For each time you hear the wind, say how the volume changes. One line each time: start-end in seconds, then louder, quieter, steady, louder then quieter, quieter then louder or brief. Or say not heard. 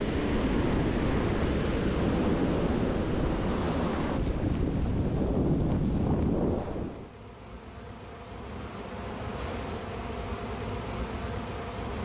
0.0-7.1 steady.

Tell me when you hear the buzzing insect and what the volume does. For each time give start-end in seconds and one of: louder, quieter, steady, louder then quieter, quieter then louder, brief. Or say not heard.
0.0-12.0 quieter then louder.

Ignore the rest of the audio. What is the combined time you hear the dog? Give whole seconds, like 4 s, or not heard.
not heard.